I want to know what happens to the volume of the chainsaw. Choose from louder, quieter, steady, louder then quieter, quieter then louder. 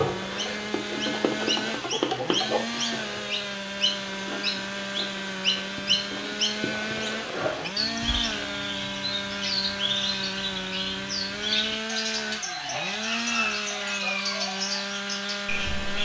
steady.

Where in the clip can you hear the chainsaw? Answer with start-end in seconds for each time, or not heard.
0.0-16.0.